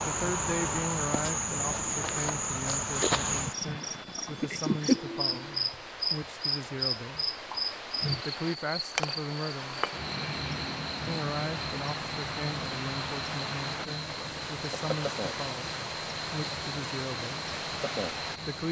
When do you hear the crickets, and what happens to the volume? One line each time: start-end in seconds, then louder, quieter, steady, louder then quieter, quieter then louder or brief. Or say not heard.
0.0-18.6 quieter.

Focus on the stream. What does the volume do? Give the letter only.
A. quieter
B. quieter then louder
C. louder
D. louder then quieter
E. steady
C.